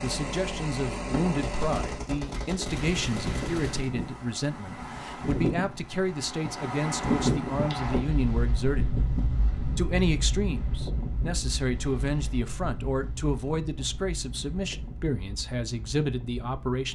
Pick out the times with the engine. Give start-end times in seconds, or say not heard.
0.0-2.1.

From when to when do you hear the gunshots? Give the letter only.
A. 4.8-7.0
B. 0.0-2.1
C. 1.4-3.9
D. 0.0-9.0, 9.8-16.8
C.